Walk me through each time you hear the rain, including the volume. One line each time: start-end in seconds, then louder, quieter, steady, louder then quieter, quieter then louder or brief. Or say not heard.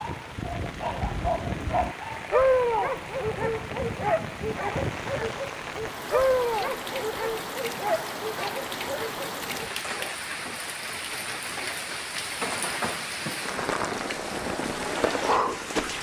0.0-15.9 louder.